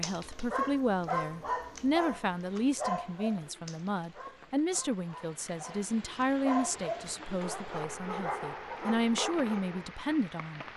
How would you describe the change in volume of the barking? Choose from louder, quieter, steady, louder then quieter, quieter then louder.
quieter then louder.